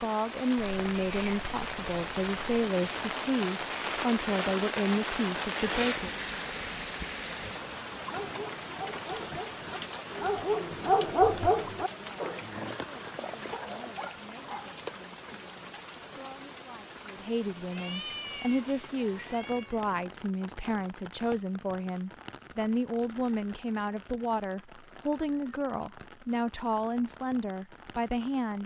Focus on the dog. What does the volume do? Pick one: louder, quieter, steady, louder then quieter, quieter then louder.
louder then quieter.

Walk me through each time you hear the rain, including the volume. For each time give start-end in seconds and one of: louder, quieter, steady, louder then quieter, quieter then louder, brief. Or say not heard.
0.0-28.6 quieter.